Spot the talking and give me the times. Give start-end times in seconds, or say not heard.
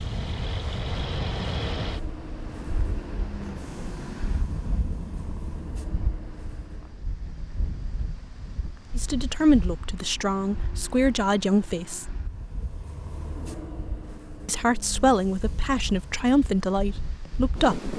8.9-12.1, 14.4-17.9.